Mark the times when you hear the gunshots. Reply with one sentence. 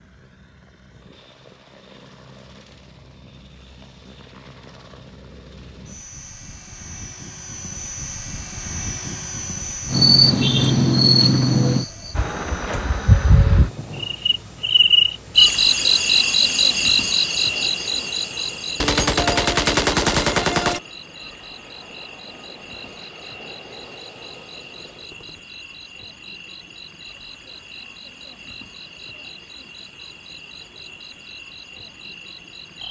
You can hear the gunshots from 18.8 to 20.8 s.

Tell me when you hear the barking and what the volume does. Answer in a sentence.
You can't hear the barking here.